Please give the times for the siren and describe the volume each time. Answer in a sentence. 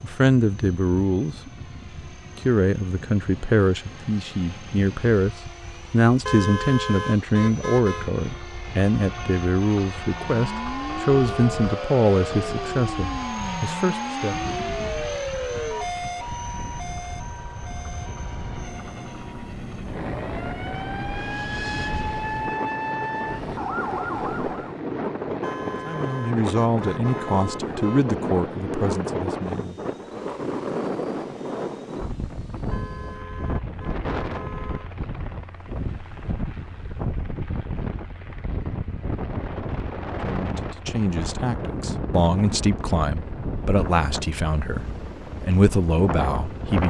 The siren can be heard from 10.0 to 24.8 s, getting quieter then louder.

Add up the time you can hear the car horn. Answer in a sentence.
The car horn can be heard for 7 seconds in total.